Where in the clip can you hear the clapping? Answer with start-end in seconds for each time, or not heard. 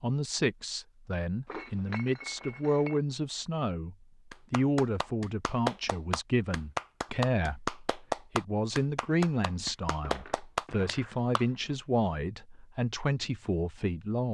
4.3-11.4.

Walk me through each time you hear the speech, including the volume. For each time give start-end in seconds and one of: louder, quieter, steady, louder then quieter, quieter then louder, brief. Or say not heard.
0.0-14.2 steady.